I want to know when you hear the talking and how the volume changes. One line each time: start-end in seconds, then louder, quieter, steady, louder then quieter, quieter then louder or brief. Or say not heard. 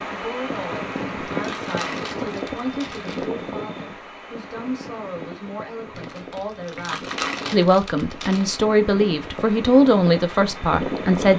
0.1-11.3 louder.